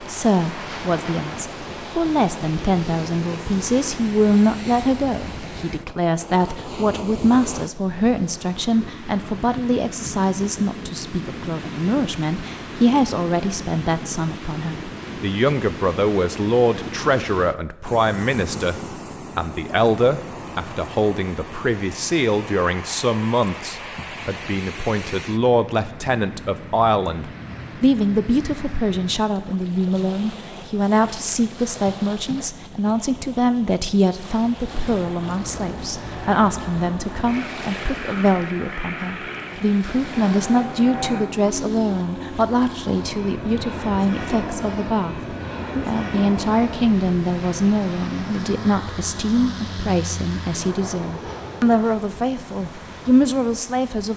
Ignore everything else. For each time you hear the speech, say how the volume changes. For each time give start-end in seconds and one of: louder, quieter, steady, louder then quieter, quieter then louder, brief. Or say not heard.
0.0-54.1 steady.